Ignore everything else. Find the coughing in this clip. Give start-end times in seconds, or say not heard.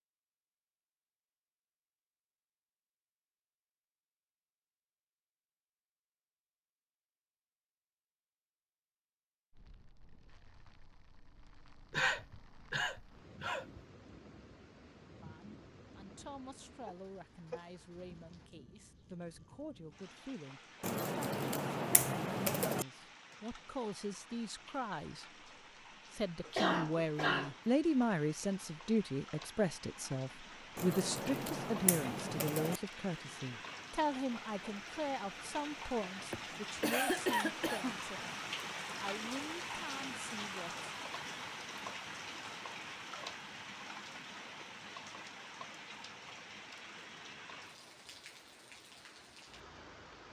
11.9-13.8, 26.4-27.5, 36.3-38.0.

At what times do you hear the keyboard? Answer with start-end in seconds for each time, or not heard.
20.8-22.9, 30.8-32.8.